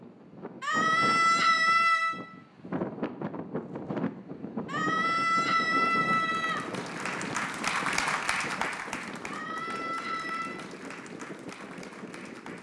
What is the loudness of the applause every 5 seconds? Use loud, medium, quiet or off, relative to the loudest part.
off, loud, quiet.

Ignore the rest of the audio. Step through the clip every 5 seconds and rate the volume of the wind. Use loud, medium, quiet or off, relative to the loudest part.
loud, loud, medium.